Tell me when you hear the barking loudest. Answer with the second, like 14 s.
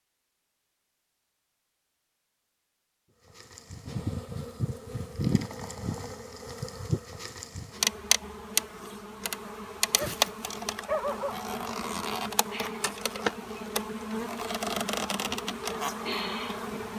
11 s.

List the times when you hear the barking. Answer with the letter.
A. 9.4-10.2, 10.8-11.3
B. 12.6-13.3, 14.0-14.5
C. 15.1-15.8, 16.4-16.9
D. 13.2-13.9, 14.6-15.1
A.